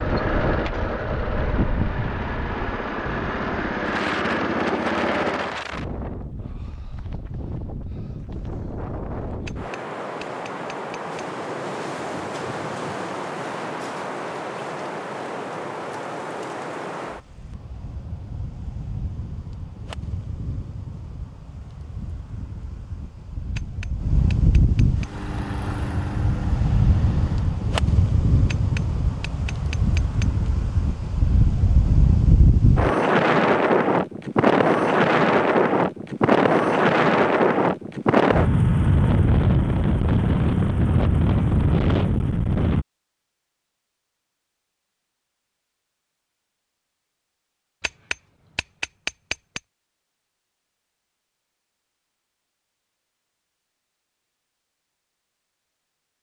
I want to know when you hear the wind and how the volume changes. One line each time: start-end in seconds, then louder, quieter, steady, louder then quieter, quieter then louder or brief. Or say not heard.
0.0-42.9 louder.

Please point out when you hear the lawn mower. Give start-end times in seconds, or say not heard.
0.0-5.6, 24.9-27.6.